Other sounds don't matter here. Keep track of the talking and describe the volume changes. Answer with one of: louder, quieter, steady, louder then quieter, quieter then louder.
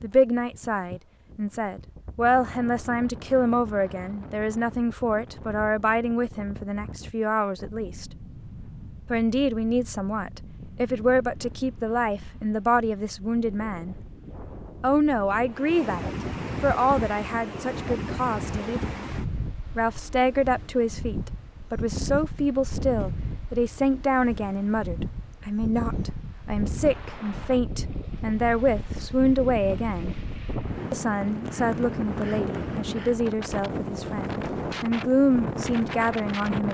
steady.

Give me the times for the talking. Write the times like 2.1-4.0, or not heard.
0.0-8.1, 9.1-13.9, 14.8-19.1, 19.8-30.1, 30.9-36.6.